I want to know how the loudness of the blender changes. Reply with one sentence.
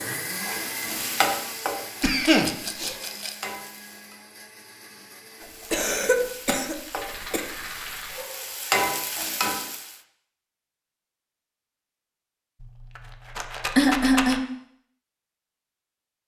The loudness of the blender goes down.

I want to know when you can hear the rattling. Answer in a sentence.
You can hear the rattling from 2.0 to 3.5 s, from 6.7 to 8.2 s and from 12.6 to 14.4 s.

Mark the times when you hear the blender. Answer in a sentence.
You can hear the blender from 0.0 to 5.8 s.